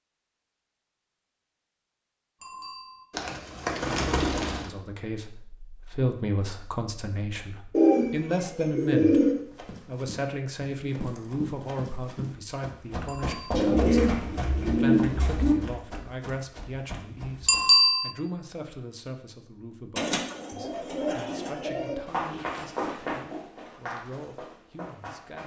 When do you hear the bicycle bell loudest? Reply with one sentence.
The volume of the bicycle bell peaks at 18 seconds.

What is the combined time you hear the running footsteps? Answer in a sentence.
The running footsteps can be heard for 12 seconds in total.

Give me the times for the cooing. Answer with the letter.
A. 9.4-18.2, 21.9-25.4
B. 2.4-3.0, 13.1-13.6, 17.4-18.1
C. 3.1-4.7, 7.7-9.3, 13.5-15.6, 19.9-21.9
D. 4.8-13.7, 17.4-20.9
C.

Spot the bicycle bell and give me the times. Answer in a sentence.
You can hear the bicycle bell from 2.4 to 3.0 s, from 13.1 to 13.6 s and from 17.4 to 18.1 s.